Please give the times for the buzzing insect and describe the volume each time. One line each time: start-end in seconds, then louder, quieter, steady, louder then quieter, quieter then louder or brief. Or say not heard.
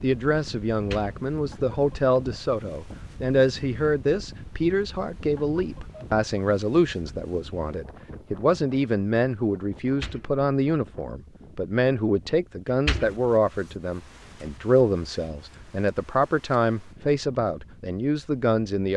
not heard.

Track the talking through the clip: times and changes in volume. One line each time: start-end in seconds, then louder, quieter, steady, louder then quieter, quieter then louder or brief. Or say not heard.
0.0-18.9 steady.